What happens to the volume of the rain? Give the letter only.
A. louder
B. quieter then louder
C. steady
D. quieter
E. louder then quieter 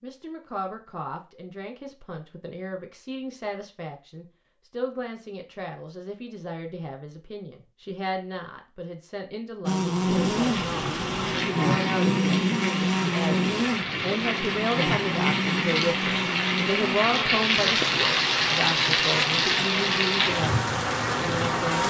A.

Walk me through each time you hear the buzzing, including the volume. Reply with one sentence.
You can hear the buzzing from 9.7 to 21.8 s, getting quieter.